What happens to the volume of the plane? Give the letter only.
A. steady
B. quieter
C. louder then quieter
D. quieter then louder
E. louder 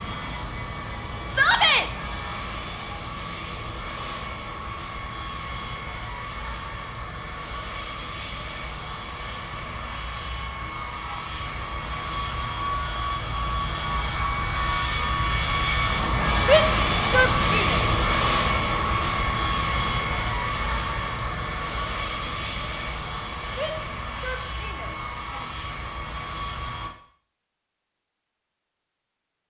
C.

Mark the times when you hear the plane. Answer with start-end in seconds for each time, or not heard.
0.0-26.9.